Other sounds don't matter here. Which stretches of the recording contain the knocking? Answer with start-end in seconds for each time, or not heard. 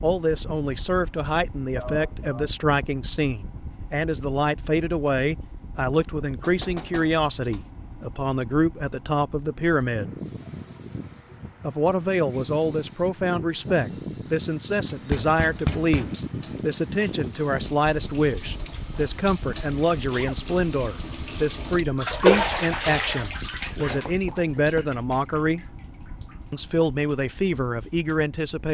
5.9-7.7, 15.1-16.2, 23.9-24.9.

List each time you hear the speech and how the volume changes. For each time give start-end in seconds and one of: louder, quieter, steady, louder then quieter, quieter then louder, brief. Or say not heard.
0.0-10.2 steady
11.6-25.6 steady
26.5-28.7 brief.